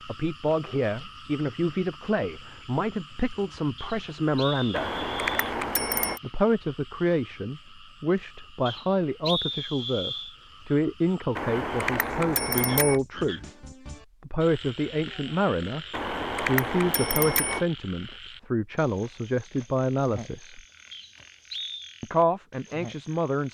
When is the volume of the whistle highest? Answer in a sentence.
The loudest moment of the whistle is at 9 seconds.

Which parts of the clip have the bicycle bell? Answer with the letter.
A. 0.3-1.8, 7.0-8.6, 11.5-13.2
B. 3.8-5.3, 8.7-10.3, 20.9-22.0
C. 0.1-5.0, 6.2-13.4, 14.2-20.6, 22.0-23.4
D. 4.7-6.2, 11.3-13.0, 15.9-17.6
D.